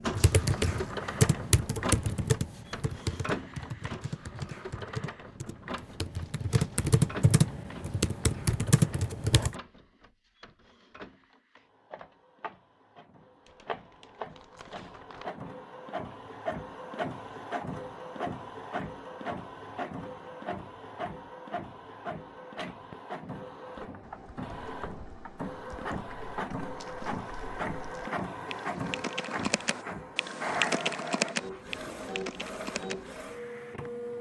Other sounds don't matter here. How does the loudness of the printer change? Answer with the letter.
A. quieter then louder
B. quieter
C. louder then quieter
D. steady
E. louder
A.